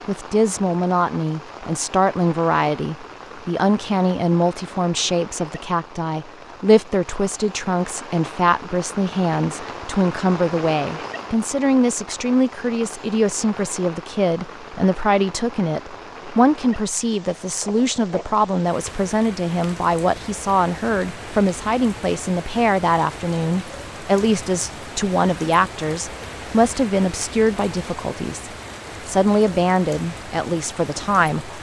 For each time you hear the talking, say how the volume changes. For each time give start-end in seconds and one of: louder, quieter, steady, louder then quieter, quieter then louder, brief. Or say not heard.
0.1-31.5 steady.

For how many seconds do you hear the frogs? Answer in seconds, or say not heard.
not heard.